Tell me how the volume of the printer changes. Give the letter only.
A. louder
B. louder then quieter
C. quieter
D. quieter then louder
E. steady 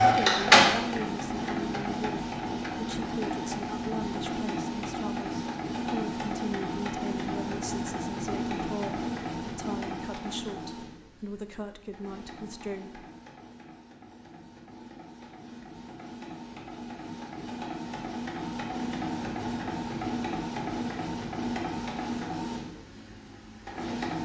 D.